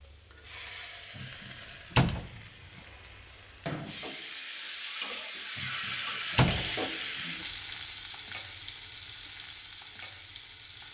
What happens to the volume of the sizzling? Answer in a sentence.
The volume of the sizzling goes up, then down.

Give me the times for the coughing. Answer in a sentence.
You can't hear the coughing here.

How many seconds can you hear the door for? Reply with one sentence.
You can hear the door for 2 seconds altogether.